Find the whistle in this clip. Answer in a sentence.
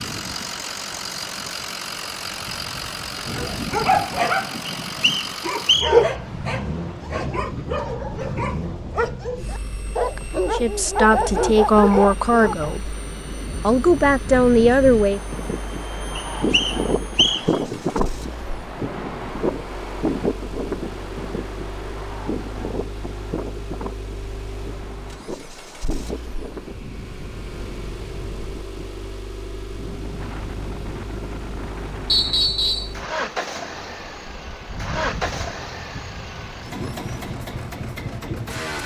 The whistle can be heard from 4.7 to 5.9 s, from 16.1 to 17.4 s and from 32.1 to 33.0 s.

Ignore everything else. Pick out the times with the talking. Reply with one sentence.
The talking can be heard from 10.5 to 12.9 s and from 13.6 to 15.2 s.